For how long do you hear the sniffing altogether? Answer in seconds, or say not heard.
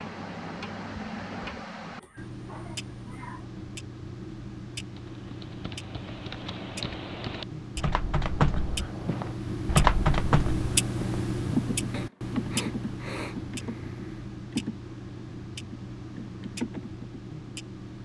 4 s.